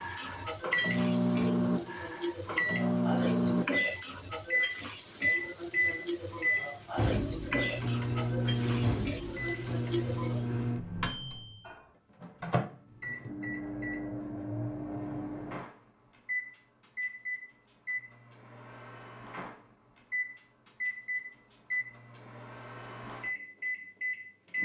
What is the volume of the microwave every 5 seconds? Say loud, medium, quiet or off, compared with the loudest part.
loud, loud, medium, medium, medium.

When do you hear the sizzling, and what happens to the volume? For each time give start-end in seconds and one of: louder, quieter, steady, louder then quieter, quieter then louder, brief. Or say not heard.
0.0-10.4 steady.